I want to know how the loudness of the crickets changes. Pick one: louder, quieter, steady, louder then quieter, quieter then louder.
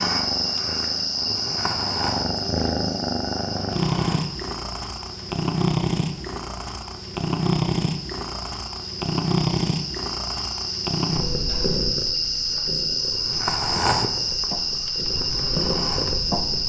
quieter then louder.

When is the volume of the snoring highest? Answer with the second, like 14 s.
14 s.